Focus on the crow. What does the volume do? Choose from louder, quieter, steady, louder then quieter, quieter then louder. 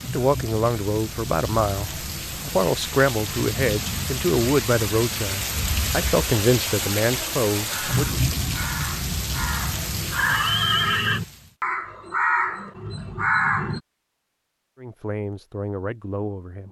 louder.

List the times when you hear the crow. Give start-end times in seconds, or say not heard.
7.7-13.8.